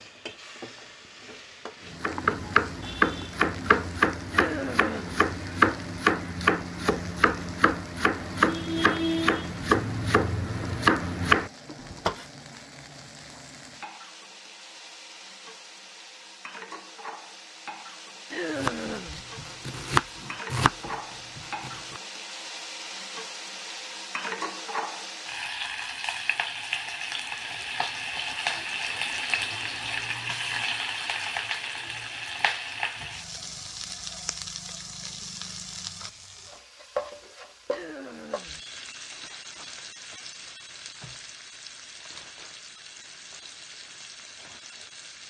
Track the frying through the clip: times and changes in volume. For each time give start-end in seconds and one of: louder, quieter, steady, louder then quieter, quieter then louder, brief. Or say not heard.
0.0-45.2 louder then quieter.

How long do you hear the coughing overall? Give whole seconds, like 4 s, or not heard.
3 s.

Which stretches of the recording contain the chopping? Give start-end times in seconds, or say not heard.
1.9-12.2, 18.6-22.0.